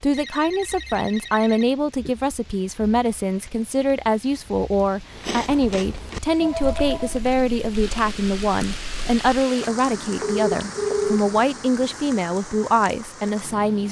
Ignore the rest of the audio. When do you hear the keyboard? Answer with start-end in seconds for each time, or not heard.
not heard.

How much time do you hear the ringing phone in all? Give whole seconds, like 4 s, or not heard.
4 s.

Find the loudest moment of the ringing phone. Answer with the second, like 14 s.
11 s.